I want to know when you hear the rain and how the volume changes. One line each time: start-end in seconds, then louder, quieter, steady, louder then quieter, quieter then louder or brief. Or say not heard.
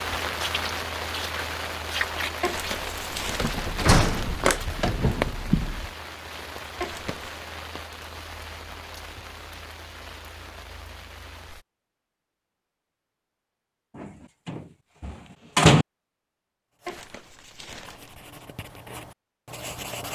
0.0-11.7 quieter.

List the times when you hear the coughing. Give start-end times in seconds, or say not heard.
not heard.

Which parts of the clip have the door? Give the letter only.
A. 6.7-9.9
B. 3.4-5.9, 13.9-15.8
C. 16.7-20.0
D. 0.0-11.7
B.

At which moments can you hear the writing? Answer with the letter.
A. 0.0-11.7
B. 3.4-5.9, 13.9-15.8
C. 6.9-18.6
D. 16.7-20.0
D.